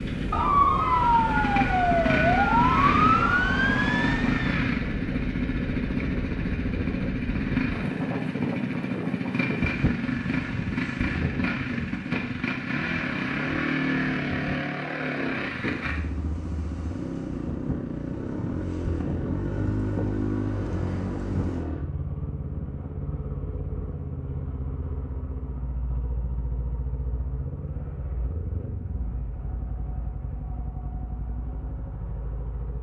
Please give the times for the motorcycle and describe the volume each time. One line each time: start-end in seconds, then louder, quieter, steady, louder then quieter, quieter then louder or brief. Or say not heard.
0.0-32.7 quieter.